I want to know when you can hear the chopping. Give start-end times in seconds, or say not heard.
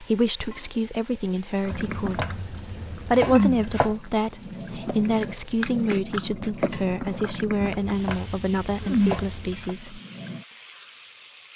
1.7-4.0, 7.8-9.8.